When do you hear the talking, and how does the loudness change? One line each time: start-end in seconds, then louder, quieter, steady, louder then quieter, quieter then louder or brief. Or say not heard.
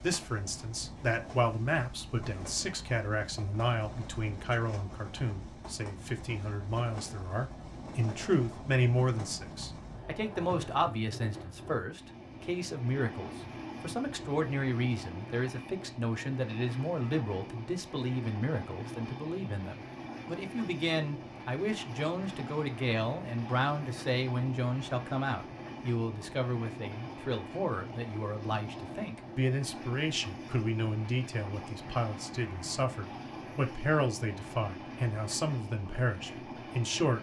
0.0-37.1 steady.